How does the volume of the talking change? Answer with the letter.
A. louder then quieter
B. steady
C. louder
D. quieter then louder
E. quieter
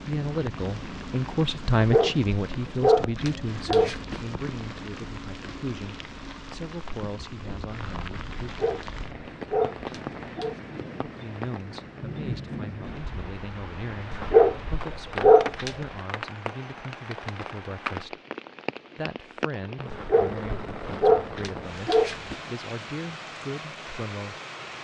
E.